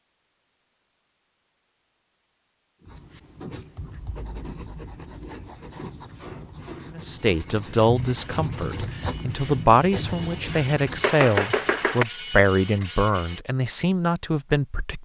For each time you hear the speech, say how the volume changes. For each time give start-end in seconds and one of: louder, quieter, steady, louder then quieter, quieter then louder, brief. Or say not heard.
7.0-15.0 steady.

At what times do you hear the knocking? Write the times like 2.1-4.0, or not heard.
11.0-12.1.